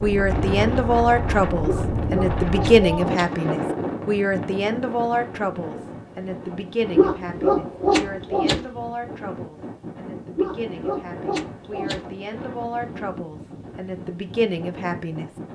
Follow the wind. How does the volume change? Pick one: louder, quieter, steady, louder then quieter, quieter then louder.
quieter.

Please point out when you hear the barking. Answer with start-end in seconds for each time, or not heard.
1.6-3.4, 7.0-8.7, 10.3-12.1.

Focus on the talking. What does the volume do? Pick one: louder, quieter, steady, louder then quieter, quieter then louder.
quieter then louder.